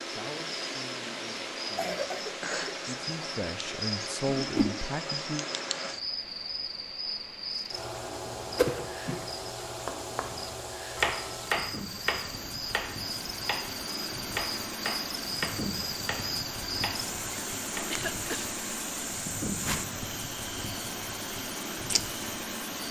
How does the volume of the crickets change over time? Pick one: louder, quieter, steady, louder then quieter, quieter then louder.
steady.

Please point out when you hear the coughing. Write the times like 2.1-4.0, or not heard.
1.8-3.3, 8.7-9.3, 17.9-18.4.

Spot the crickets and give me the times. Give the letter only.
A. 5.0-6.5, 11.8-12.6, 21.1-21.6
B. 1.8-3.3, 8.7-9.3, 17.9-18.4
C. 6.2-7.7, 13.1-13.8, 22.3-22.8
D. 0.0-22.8
D.